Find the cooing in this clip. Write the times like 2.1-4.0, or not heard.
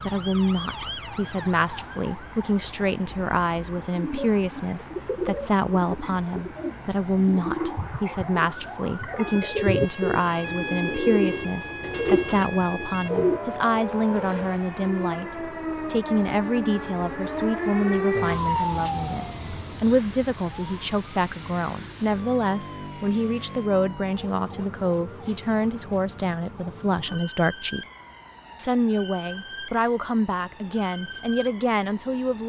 3.9-13.4.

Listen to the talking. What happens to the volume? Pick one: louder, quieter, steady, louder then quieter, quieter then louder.
steady.